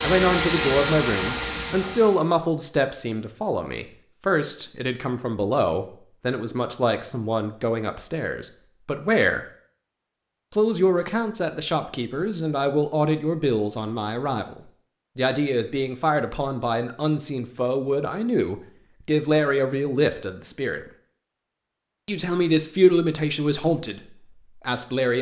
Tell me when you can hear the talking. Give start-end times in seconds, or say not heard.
0.0-9.4, 10.5-20.8, 22.1-24.0, 24.6-25.1.